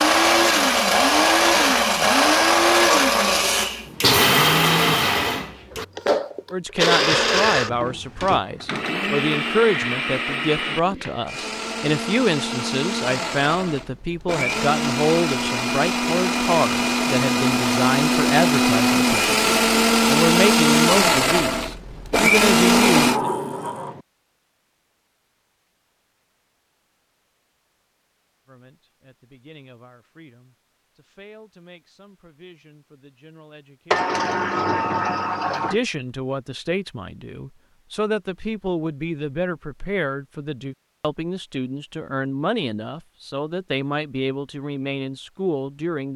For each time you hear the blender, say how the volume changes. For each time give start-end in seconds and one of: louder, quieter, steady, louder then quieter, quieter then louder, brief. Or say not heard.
0.0-23.2 quieter then louder.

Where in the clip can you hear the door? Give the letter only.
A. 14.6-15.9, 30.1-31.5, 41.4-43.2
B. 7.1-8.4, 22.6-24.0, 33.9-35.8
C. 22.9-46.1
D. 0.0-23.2
B.